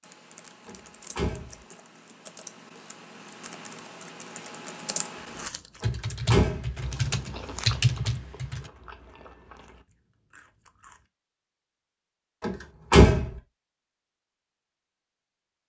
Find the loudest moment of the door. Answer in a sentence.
The loudest moment of the door is at 13 seconds.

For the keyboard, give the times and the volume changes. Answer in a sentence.
You can hear the keyboard from 0.0 to 8.7 s, getting louder.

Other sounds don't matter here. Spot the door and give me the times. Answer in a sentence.
You can hear the door from 0.7 to 1.6 s, from 5.8 to 6.7 s and from 12.4 to 13.3 s.